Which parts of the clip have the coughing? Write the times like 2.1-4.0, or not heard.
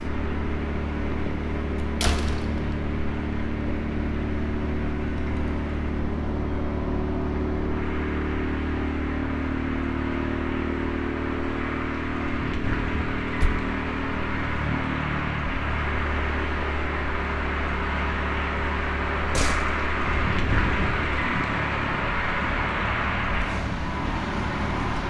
not heard.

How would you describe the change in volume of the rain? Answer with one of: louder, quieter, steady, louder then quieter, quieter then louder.
louder.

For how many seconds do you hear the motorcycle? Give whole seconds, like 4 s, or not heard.
25 s.